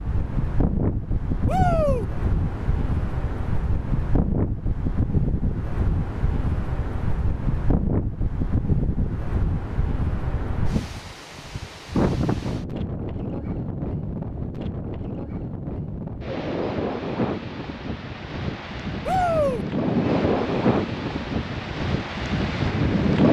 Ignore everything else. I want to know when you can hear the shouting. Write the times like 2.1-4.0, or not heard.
1.4-2.0, 19.1-19.6.